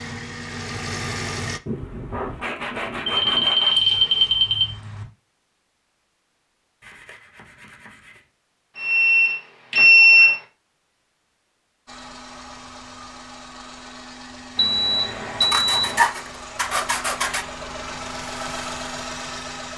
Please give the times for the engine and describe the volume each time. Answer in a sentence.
You can hear the engine briefly from 0.0 to 1.6 s; and from 11.8 to 19.7 s, getting louder.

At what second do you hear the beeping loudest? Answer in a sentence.
The volume of the beeping peaks at 10 seconds.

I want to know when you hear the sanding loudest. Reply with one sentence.
The volume of the sanding peaks at 16 seconds.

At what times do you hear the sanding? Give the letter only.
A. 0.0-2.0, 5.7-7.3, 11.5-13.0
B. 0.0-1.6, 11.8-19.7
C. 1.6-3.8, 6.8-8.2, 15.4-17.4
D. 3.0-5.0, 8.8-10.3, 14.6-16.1
C.